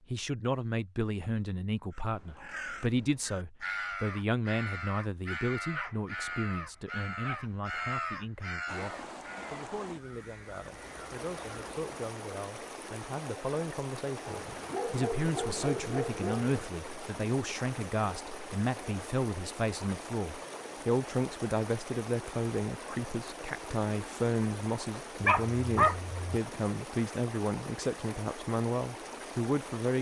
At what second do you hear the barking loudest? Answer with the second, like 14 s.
26 s.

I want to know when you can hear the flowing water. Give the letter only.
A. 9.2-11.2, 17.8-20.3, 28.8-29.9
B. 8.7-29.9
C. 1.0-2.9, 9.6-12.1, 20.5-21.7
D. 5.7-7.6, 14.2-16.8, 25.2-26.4
B.